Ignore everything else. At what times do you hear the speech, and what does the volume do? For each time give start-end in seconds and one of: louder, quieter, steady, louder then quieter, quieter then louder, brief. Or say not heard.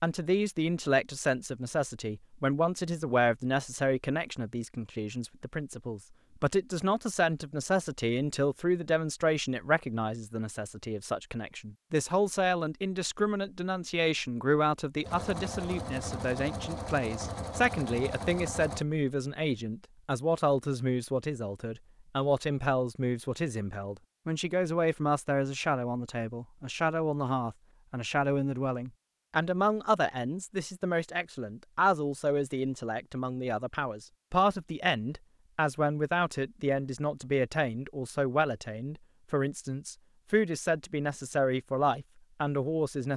0.0-43.1 steady.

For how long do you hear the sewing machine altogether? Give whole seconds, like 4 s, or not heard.
4 s.